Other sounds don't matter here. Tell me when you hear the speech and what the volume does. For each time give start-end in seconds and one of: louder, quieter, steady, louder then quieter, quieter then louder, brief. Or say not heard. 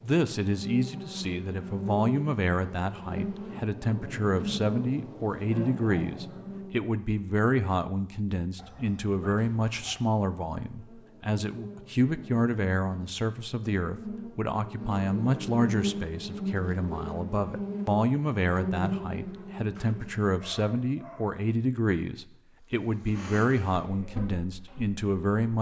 0.0-25.5 steady.